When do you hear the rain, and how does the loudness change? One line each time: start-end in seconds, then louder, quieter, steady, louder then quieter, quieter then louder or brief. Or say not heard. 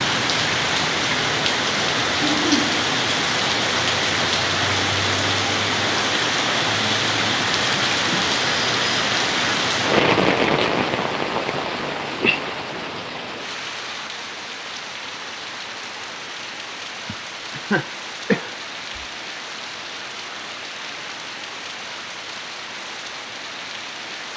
0.0-24.3 quieter.